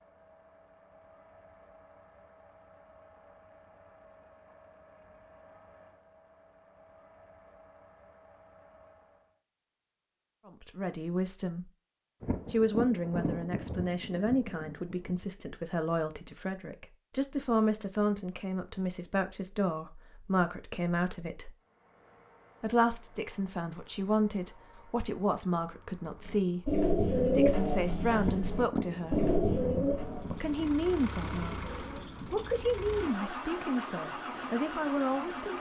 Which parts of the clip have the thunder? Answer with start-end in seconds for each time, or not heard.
12.2-15.2, 28.2-30.7.